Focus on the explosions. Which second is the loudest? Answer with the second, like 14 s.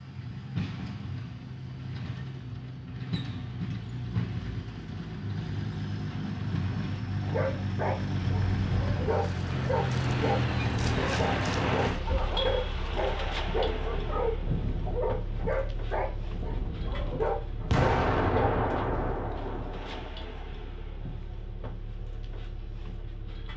18 s.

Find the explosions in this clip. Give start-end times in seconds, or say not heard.
17.7-20.1.